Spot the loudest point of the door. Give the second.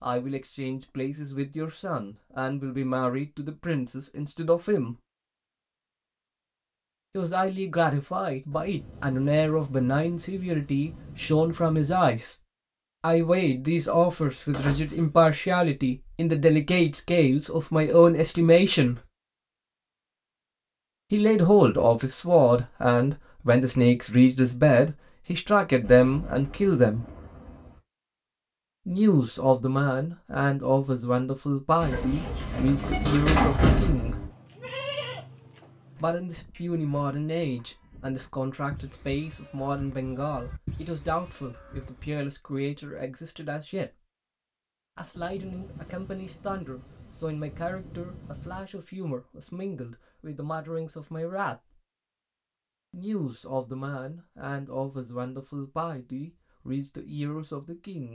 34 s.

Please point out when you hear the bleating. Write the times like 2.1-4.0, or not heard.
34.3-42.1.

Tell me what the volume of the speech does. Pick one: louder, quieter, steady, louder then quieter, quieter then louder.
louder then quieter.